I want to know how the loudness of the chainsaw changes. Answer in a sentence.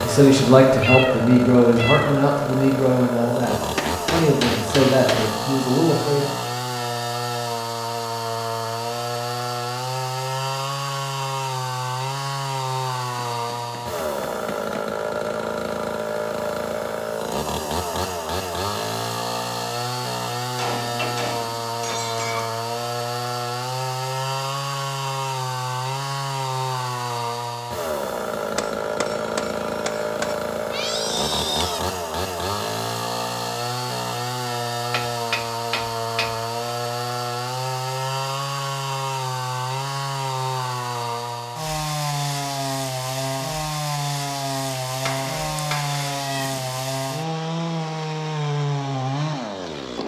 The loudness of the chainsaw stays about the same.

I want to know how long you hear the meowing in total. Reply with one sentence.
You can hear the meowing for 4 seconds altogether.